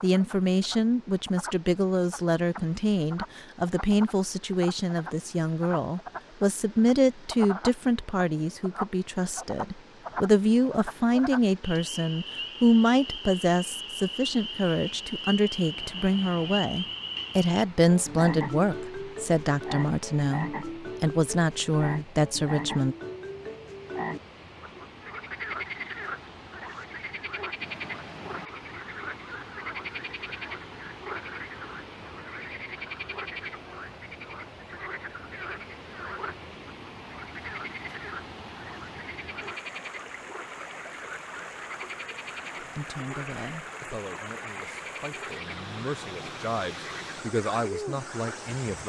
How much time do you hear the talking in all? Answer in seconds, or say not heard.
29 s.